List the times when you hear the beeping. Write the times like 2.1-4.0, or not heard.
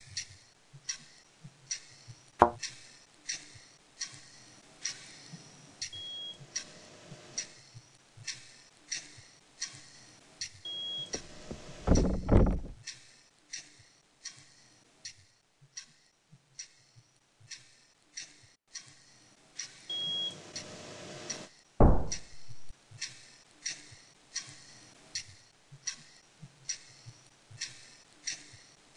5.9-7.6, 10.7-12.1, 19.9-21.5.